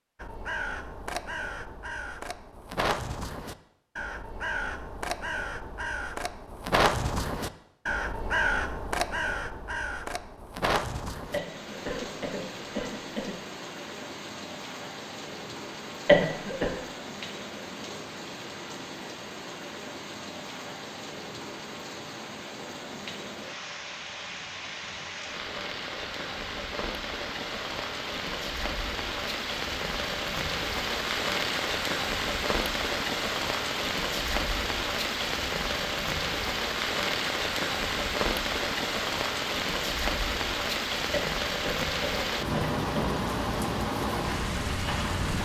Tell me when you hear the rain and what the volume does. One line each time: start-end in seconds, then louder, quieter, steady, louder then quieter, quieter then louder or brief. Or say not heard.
11.2-45.3 louder.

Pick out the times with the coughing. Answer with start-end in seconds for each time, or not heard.
11.3-13.3, 16.1-16.7, 41.1-43.1.